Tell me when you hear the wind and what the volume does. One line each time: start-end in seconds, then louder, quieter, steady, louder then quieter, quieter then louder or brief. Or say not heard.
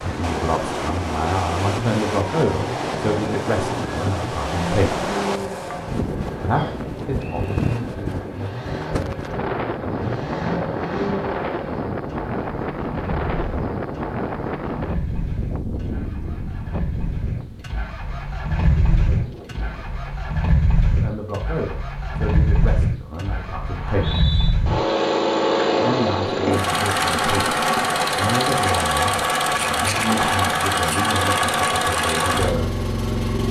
0.0-20.1 quieter.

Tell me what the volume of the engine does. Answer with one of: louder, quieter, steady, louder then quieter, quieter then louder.
louder.